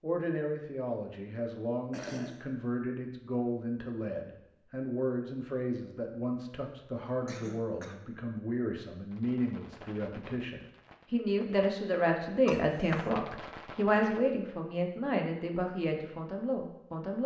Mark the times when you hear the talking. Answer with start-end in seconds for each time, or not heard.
0.0-17.2.